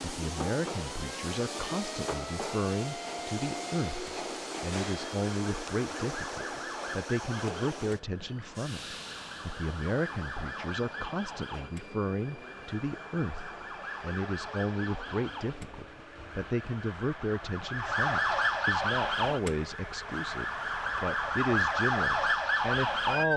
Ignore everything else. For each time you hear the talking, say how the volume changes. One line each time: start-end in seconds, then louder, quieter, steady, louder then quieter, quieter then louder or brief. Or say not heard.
0.0-23.3 steady.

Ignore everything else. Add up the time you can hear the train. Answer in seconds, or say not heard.
23 s.